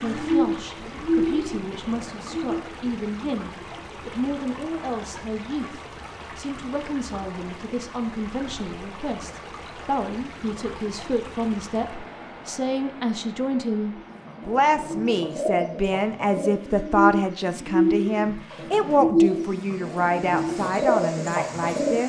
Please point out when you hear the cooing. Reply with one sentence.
You can hear the cooing from 0.0 to 2.6 s and from 13.9 to 22.0 s.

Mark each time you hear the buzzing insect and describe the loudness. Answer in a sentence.
You can't hear the buzzing insect here.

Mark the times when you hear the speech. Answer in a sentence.
The speech can be heard from 0.0 to 22.0 s.